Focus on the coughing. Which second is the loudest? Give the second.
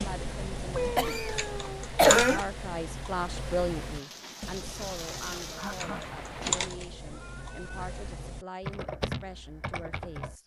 2 s.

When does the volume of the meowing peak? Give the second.
1 s.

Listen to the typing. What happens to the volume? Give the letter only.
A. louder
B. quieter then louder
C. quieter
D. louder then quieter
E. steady
B.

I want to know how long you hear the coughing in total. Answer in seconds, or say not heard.
2 s.